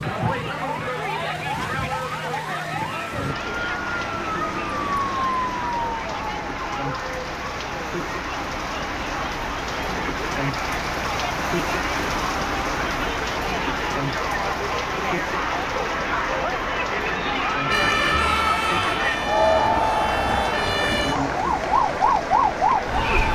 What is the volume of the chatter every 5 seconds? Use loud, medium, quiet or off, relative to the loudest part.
medium, medium, medium, loud, loud.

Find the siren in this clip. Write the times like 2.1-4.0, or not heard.
0.0-7.1, 17.7-23.3.